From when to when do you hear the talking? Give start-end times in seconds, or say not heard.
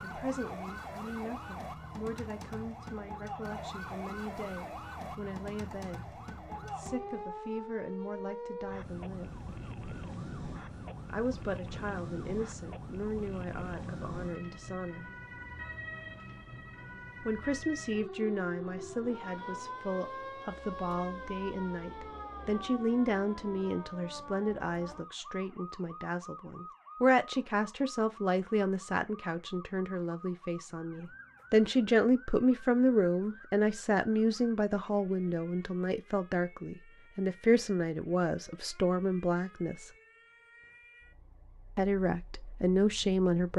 0.0-6.0, 6.8-9.3, 11.1-15.1, 17.2-39.9, 41.8-43.5.